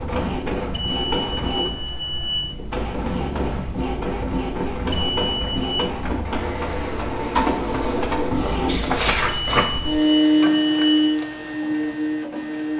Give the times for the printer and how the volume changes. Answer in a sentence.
The printer can be heard from 0.0 to 12.7 s, getting louder.